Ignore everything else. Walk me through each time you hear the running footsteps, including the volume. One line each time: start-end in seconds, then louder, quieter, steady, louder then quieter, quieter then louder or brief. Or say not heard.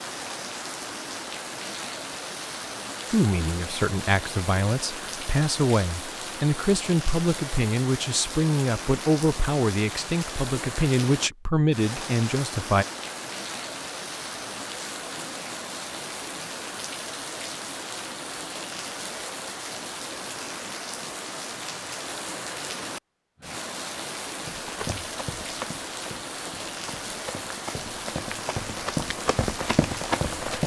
24.4-30.6 quieter then louder.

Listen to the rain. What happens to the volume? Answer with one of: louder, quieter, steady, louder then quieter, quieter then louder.
steady.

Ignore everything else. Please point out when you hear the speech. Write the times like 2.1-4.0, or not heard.
3.1-12.8.